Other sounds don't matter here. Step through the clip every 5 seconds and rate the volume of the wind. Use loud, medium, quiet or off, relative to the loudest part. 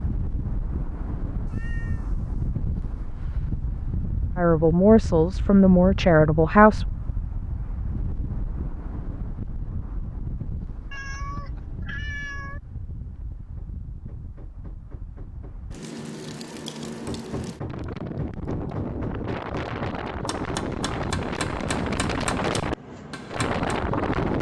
medium, medium, quiet, medium, loud.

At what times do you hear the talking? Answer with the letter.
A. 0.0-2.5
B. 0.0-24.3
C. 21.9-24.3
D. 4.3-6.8
D.